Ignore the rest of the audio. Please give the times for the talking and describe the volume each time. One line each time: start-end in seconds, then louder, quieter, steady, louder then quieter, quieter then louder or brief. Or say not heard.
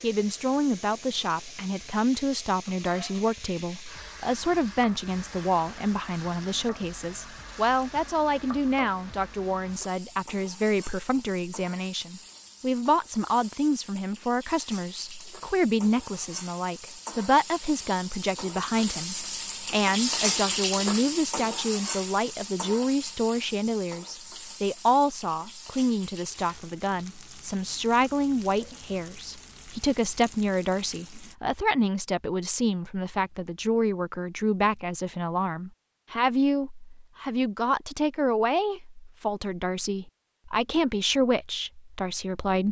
0.0-42.6 steady.